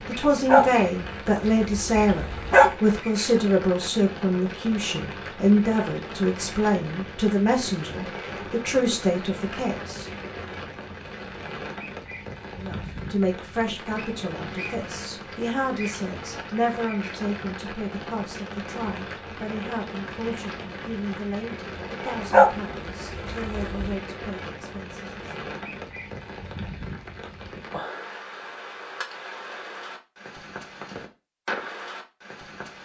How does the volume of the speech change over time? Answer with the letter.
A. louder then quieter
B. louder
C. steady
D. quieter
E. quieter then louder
D.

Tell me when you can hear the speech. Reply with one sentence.
The speech can be heard from 0.0 to 10.1 s and from 12.6 to 25.4 s.